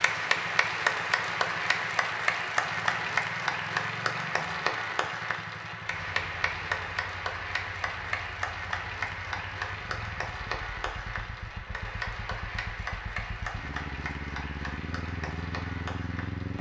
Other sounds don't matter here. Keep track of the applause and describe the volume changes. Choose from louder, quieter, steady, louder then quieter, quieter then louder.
quieter.